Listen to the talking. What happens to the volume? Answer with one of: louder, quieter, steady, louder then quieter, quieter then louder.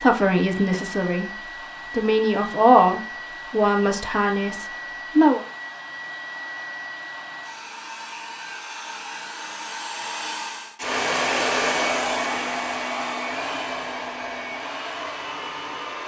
louder then quieter.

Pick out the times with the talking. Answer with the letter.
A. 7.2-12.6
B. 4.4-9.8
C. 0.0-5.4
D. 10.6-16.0
C.